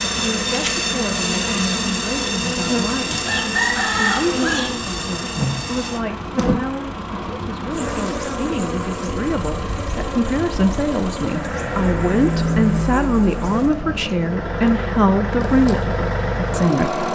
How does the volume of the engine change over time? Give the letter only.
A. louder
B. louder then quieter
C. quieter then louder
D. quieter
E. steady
A.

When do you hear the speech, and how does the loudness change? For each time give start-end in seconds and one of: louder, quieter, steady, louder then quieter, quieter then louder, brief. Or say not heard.
0.1-17.1 louder.